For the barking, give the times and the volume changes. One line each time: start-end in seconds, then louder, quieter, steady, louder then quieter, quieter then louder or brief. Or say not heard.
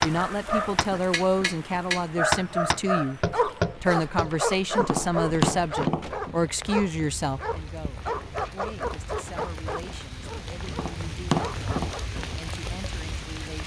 0.1-12.2 quieter.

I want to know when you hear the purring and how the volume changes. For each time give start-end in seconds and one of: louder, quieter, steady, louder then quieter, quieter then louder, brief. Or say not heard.
not heard.